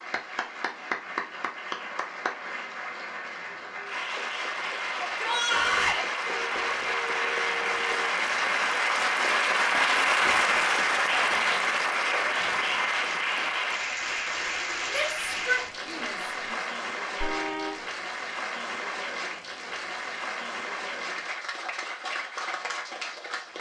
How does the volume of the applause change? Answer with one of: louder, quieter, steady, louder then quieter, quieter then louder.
louder then quieter.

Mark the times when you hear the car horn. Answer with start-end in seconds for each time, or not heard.
6.2-8.1, 17.2-17.9.